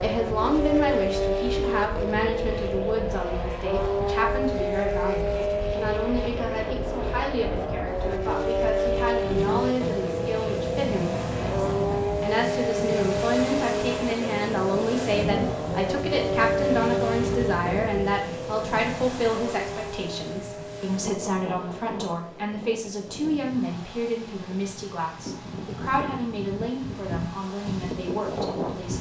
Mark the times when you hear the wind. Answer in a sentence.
The wind can be heard from 0.0 to 28.9 s.